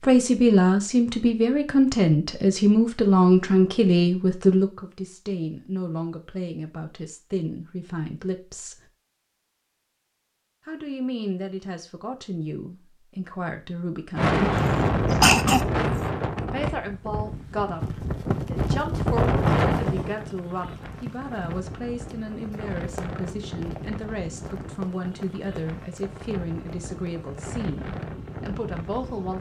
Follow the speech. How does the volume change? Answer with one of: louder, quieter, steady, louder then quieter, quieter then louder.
quieter.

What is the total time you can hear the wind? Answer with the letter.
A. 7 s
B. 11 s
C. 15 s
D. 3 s
C.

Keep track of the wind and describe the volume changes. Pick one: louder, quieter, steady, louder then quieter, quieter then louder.
quieter.